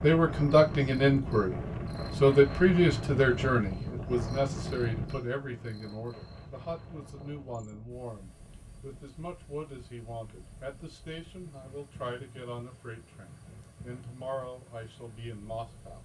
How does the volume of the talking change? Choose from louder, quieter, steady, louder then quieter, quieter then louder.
quieter.